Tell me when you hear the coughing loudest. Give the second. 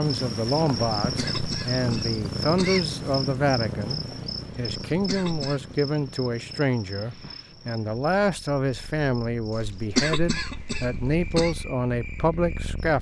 10 s.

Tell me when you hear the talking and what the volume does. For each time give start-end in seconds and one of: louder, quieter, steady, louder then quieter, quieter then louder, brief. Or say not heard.
0.0-12.9 steady.